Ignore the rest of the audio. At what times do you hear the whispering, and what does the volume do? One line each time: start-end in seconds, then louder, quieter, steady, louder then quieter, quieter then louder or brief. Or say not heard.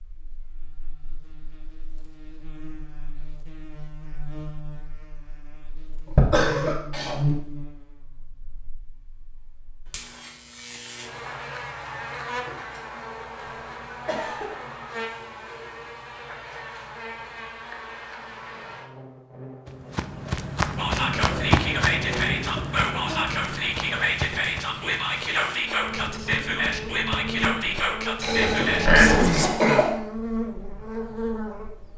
20.8-29.5 steady.